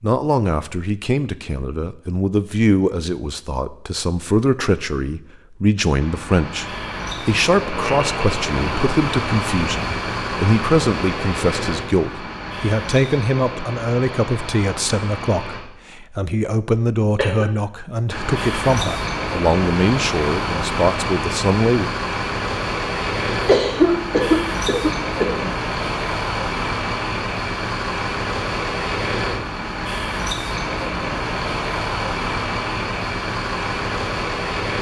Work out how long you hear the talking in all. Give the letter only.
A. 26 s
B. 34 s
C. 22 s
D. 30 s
C.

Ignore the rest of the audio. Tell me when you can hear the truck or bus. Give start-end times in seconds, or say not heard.
6.0-15.6, 18.1-34.7.